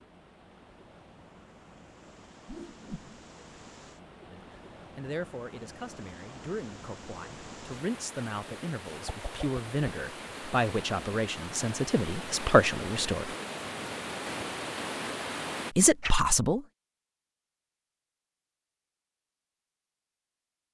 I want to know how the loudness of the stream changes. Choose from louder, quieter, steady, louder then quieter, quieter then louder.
louder.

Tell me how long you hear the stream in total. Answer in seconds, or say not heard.
16 s.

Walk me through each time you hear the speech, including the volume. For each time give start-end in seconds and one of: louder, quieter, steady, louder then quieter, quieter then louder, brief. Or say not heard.
4.2-13.3 louder
15.8-16.6 brief.